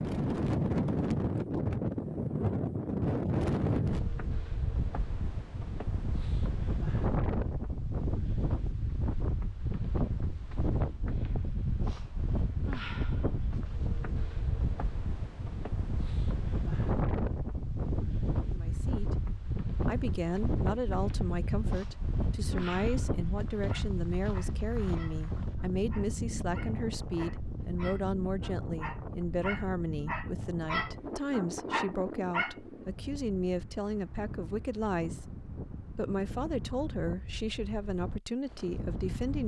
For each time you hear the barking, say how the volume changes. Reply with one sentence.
You can hear the barking from 23.6 to 32.5 s, getting louder.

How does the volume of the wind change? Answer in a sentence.
The loudness of the wind goes down.